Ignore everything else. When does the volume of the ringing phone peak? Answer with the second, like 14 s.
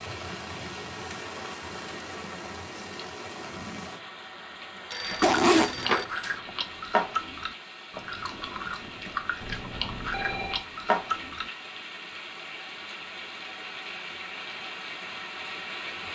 6 s.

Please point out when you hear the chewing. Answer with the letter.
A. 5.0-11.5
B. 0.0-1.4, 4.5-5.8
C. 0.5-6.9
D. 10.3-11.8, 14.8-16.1
A.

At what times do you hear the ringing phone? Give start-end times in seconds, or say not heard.
4.9-6.3, 9.4-10.7.